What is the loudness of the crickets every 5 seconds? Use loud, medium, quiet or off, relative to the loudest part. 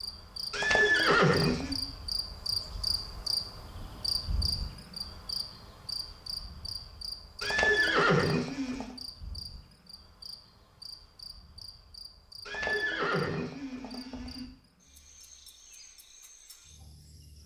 loud, medium, quiet, quiet.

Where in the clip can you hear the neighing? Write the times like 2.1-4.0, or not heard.
0.5-1.8, 7.4-8.9, 12.4-14.4.